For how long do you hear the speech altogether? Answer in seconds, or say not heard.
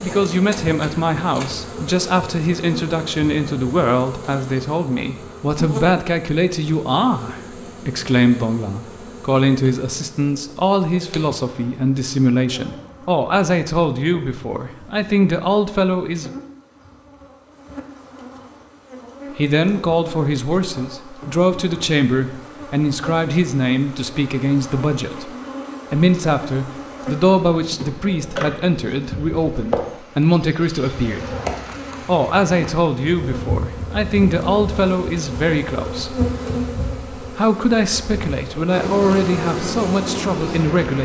36 s.